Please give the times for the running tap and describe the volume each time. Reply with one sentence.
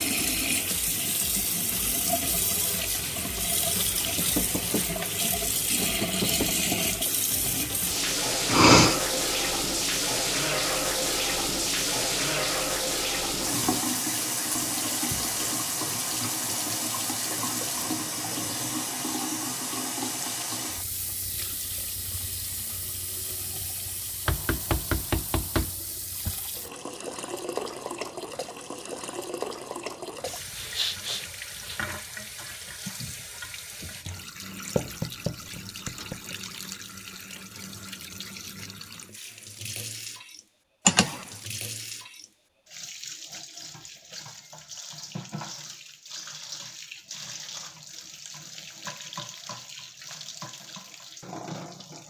The running tap can be heard from 0.0 to 52.0 s, getting quieter.